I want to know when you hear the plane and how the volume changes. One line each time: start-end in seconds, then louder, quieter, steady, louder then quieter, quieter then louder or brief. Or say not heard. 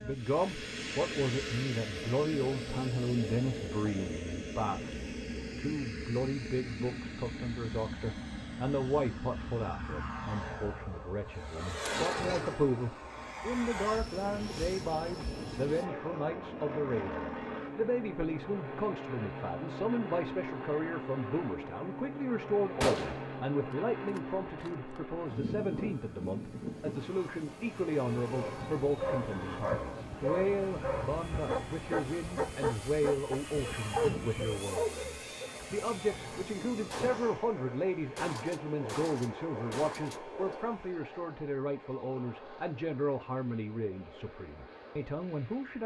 0.0-45.8 quieter.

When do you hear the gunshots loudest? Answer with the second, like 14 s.
23 s.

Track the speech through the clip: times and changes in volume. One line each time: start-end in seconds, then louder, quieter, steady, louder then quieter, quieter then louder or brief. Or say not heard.
0.0-45.8 steady.